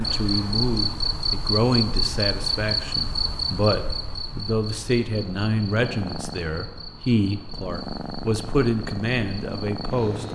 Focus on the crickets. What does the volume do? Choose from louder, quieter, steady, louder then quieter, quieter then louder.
quieter.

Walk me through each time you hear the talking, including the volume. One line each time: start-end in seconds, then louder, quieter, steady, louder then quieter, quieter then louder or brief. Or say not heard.
0.0-10.3 steady.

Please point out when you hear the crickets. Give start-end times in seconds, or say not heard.
0.0-10.3.